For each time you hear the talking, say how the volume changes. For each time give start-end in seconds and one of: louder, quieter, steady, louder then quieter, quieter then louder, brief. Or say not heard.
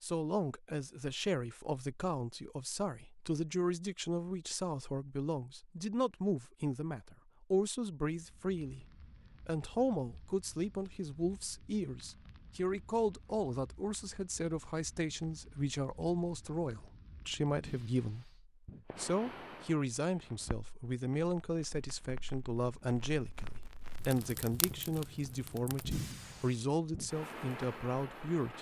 0.0-28.5 steady.